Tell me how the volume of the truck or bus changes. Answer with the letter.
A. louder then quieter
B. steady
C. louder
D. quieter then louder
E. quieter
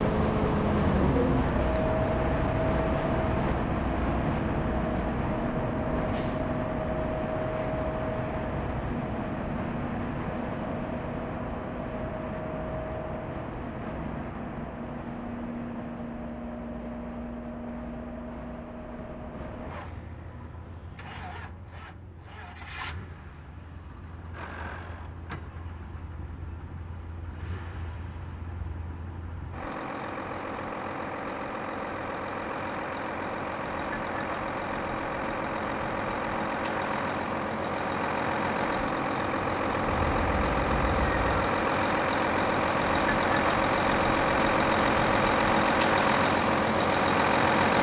D.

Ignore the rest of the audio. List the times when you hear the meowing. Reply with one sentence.
You can hear the meowing from 39.9 to 41.5 s.